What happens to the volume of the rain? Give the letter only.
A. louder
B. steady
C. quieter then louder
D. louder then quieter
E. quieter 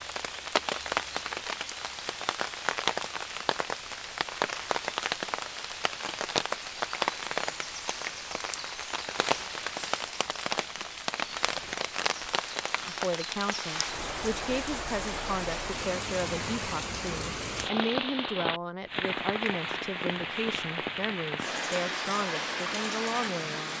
B.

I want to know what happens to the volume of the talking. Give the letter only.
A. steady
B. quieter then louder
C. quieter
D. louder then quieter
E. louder
A.